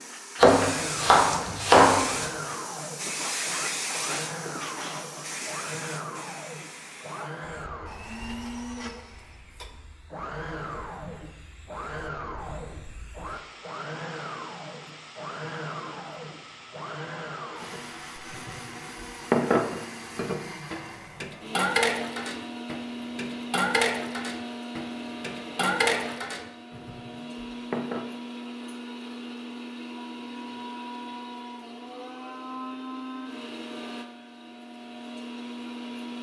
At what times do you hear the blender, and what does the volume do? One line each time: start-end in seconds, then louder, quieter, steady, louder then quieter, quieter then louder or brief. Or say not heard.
0.0-36.1 steady.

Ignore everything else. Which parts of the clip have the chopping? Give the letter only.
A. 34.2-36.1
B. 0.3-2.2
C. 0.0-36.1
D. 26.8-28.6
B.